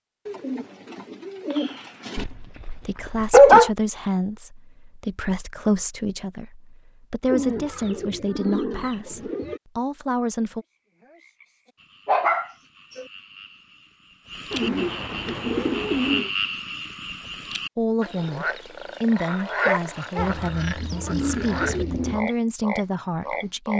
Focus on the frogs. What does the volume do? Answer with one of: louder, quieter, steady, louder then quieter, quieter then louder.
louder.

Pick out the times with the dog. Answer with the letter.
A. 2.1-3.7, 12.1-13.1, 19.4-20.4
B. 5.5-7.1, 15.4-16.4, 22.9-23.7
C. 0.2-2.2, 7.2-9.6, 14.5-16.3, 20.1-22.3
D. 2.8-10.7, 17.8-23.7
A.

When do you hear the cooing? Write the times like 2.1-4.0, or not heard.
0.2-2.2, 7.2-9.6, 14.5-16.3, 20.1-22.3.